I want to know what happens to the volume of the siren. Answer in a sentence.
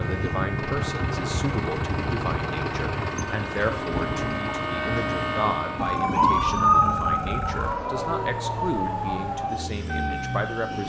The loudness of the siren goes up, then down.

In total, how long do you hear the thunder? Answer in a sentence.
You can hear the thunder for 3 seconds altogether.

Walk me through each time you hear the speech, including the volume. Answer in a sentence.
You can hear the speech from 0.0 to 10.8 s, at a steady volume.